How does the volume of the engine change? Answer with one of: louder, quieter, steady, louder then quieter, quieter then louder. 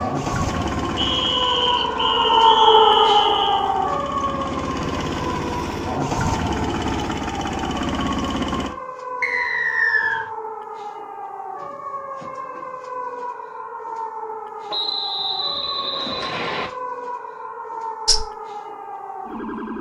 quieter then louder.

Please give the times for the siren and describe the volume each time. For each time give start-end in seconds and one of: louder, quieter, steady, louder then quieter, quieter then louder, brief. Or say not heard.
0.0-19.7 quieter.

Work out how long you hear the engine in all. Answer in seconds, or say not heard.
9 s.